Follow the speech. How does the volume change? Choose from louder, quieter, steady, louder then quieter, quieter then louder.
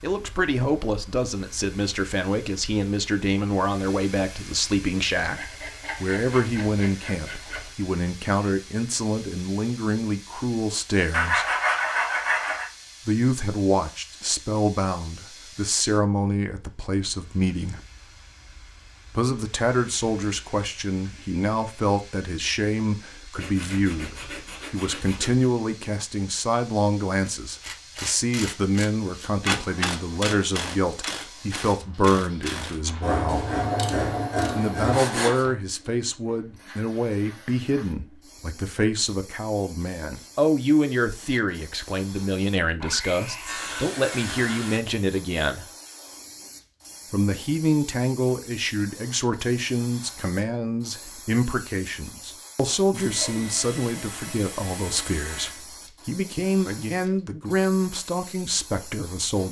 steady.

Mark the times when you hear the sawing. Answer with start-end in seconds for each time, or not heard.
5.3-7.8, 11.1-12.7, 23.4-25.4, 33.0-35.5, 42.8-44.8, 52.9-55.6.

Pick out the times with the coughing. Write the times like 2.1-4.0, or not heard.
not heard.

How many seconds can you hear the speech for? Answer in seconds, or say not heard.
54 s.